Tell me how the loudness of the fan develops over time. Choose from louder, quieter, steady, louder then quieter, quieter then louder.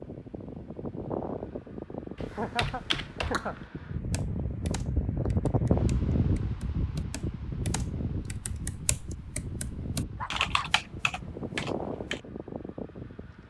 louder then quieter.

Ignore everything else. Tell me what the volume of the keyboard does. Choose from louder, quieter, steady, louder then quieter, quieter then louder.
quieter then louder.